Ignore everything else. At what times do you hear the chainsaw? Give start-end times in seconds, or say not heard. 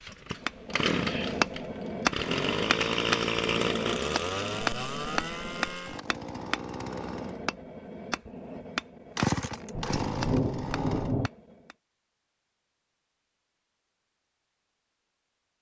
0.0-7.4, 9.2-11.2.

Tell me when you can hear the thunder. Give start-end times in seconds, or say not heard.
9.7-11.3.